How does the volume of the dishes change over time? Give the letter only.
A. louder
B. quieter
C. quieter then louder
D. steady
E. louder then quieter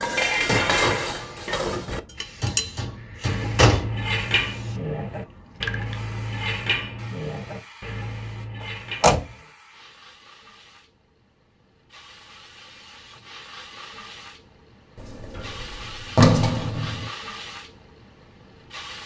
B.